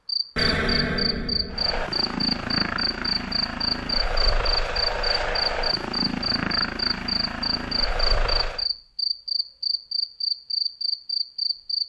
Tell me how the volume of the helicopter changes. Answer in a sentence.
The volume of the helicopter stays about the same.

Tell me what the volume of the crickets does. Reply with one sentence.
The loudness of the crickets stays about the same.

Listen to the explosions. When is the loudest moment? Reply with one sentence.
The loudest moment of the explosions is at 1 second.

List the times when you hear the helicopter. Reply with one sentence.
The helicopter can be heard from 1.5 to 8.7 s.